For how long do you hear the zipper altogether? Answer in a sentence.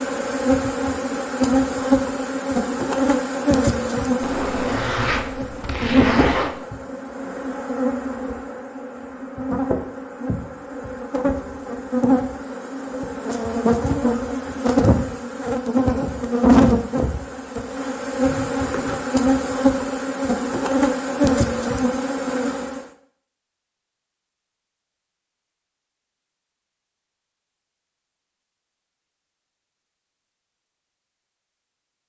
The zipper can be heard for 3 seconds in total.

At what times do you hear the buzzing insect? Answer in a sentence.
You can hear the buzzing insect from 0.0 to 22.9 s.